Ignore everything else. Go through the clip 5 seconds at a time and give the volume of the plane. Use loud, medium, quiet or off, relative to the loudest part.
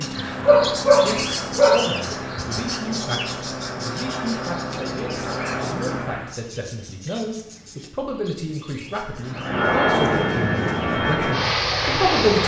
medium, loud, loud.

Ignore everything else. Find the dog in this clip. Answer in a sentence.
You can hear the dog from 0.4 to 1.9 s.